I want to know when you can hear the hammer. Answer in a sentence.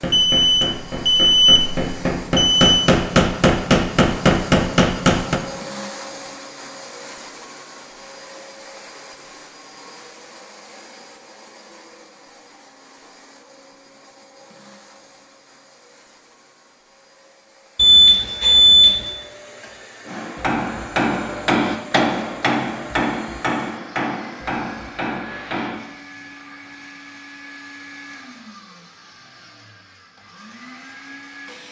You can hear the hammer from 0.0 to 5.4 s and from 20.1 to 25.8 s.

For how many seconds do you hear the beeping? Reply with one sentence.
You can hear the beeping for 4 seconds altogether.